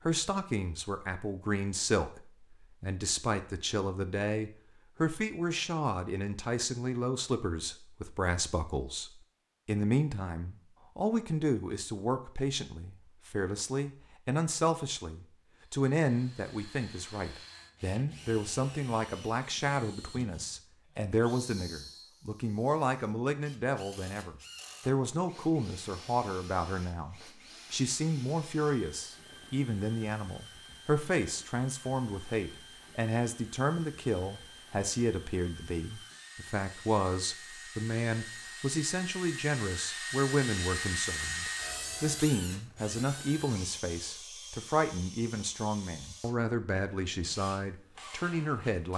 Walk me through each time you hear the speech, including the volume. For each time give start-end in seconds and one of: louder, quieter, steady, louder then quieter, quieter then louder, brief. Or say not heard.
0.1-48.9 steady.